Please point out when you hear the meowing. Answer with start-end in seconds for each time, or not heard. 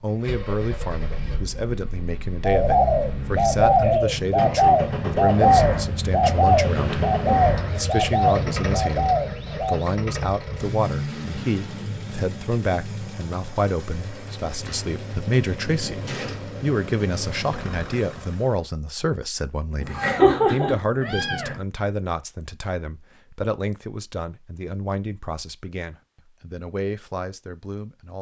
19.8-21.6.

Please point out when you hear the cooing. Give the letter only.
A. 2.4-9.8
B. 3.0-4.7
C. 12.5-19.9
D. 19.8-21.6
A.